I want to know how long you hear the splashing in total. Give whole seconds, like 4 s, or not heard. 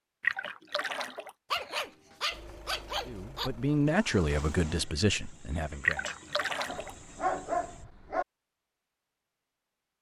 2 s.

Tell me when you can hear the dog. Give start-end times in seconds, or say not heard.
1.5-3.5, 6.7-8.2.